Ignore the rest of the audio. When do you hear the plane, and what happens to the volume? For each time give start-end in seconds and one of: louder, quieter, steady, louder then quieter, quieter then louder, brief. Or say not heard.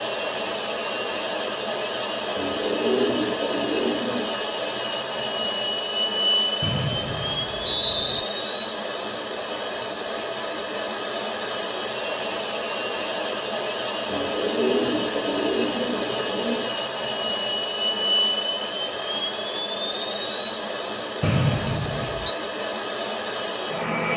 0.0-24.1 steady.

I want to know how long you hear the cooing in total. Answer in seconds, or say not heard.
5 s.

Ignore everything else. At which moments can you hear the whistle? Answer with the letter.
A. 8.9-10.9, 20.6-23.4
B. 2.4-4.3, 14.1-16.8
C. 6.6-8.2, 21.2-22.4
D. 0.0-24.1
C.